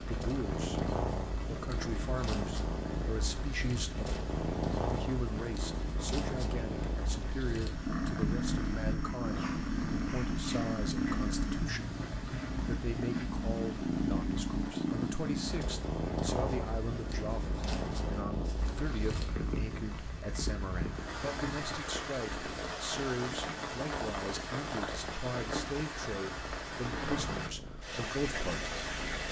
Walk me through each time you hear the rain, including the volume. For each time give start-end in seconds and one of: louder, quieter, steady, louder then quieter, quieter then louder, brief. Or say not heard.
0.0-29.2 louder.